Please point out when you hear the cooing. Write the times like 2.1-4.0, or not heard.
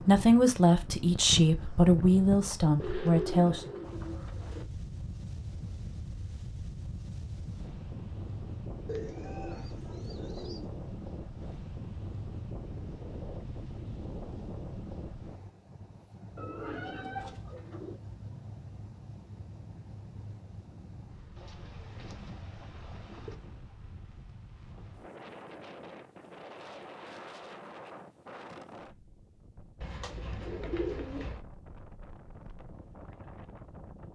2.8-4.7, 8.8-10.7, 16.4-18.0, 21.4-23.4, 29.8-31.4.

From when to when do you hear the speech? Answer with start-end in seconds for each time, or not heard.
0.0-3.7.